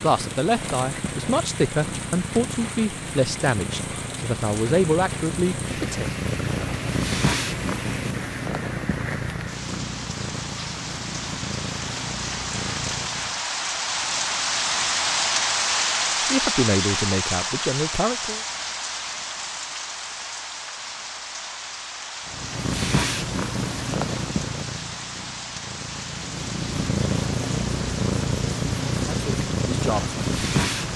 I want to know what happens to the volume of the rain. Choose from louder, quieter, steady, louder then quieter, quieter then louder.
louder then quieter.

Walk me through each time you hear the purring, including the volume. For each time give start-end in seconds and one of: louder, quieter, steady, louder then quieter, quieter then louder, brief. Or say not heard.
0.0-13.4 louder then quieter
22.2-30.9 quieter then louder.